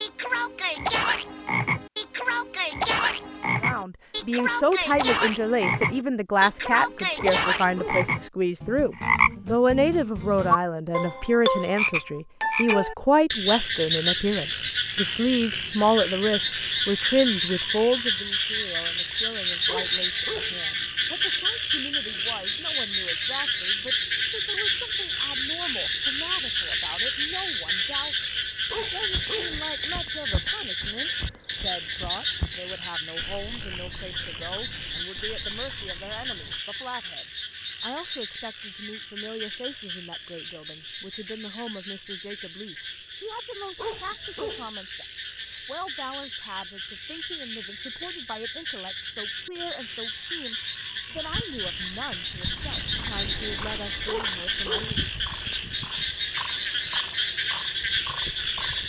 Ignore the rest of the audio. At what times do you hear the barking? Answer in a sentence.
You can hear the barking from 7.2 to 8.1 s, from 19.6 to 20.6 s, from 28.7 to 29.6 s, from 43.8 to 44.7 s and from 54.0 to 55.0 s.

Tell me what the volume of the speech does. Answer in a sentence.
The volume of the speech goes down.